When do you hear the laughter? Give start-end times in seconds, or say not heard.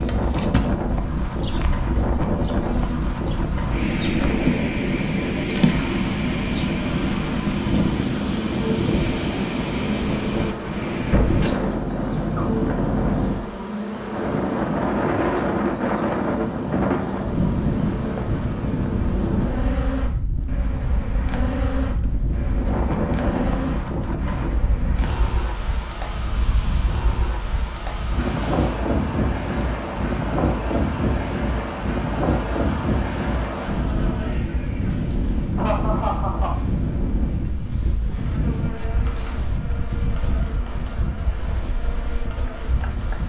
35.5-36.5.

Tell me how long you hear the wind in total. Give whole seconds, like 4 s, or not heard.
43 s.